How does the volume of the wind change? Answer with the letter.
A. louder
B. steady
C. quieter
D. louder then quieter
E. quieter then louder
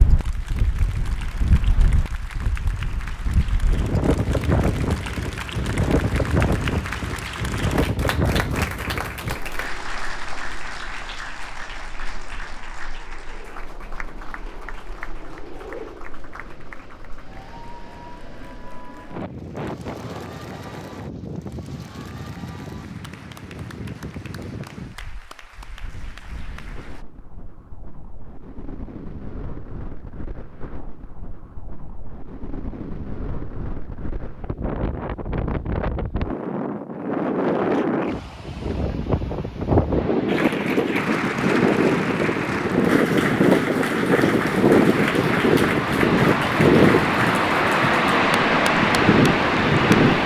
E.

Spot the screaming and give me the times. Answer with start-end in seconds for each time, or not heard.
not heard.